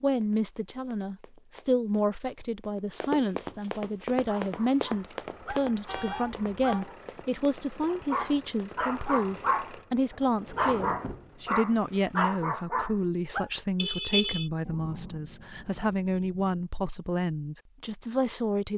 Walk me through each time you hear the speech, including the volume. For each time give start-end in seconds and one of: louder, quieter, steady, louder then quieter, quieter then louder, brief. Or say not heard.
0.0-18.7 steady.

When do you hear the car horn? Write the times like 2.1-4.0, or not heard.
5.8-6.8, 13.8-14.5.